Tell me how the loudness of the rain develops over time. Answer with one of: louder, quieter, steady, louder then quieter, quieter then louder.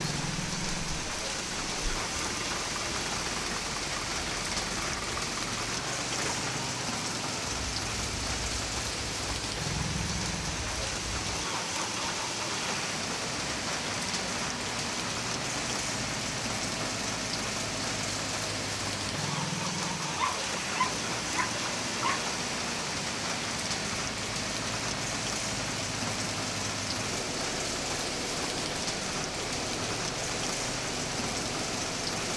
steady.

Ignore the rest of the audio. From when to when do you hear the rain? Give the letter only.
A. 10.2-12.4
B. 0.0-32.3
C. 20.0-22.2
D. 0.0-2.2
B.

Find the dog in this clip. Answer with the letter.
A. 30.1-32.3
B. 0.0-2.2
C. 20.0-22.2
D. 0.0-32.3
C.